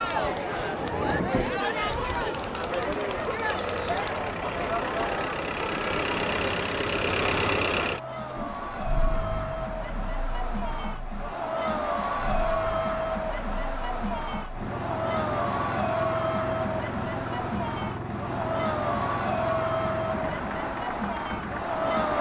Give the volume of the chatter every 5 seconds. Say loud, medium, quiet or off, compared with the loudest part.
loud, medium, loud, loud, loud.